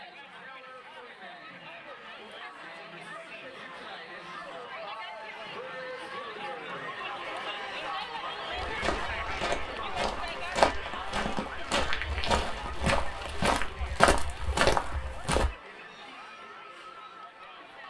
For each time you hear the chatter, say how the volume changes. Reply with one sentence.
The chatter can be heard from 0.0 to 17.8 s, getting louder then quieter.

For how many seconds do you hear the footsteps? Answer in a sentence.
You can hear the footsteps for 7 seconds altogether.